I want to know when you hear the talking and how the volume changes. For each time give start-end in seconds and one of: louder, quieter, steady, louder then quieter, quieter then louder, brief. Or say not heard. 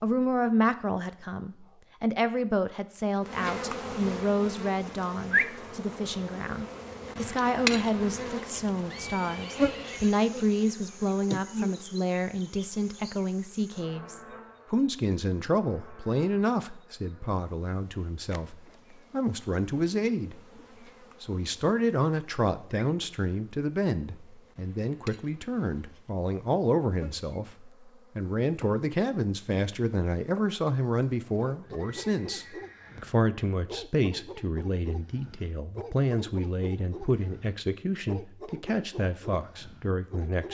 0.0-20.4 steady
21.2-40.4 steady.